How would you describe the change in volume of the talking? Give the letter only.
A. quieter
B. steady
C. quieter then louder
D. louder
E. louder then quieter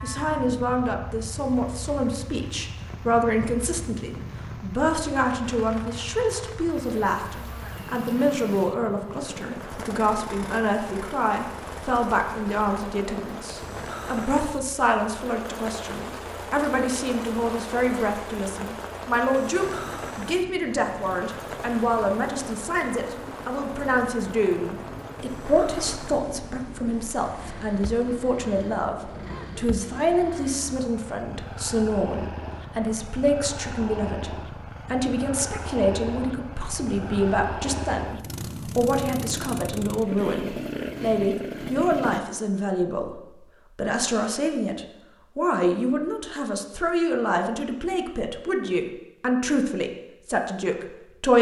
B.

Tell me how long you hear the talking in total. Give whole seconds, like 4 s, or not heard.
51 s.